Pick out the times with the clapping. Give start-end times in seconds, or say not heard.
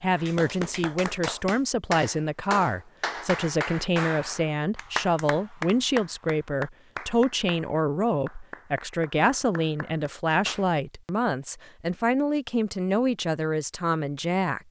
0.1-10.7.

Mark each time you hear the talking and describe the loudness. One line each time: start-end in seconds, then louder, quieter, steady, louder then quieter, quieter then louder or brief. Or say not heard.
0.0-14.6 steady.